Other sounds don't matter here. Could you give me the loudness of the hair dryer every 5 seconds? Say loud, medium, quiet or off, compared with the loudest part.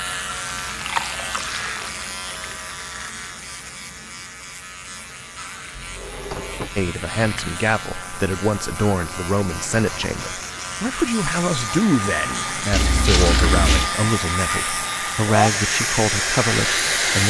off, off, medium, loud.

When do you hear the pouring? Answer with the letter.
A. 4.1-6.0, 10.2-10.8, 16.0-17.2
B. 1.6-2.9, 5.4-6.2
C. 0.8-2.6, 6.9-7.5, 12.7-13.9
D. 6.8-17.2
C.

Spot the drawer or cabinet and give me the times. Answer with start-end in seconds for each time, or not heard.
5.7-6.9, 9.4-10.2.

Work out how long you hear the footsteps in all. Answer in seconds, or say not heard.
not heard.